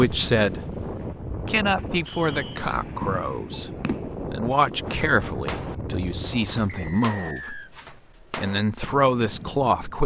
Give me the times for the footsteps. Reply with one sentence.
The footsteps can't be heard in this clip.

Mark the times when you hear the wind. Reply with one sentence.
You can hear the wind from 0.0 to 7.0 s.